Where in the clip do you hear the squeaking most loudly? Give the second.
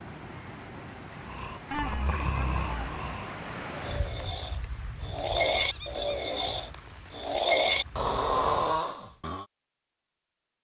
2 s.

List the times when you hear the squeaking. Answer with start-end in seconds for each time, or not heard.
1.7-3.0, 5.5-6.2.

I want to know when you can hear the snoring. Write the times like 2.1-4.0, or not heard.
1.2-9.4.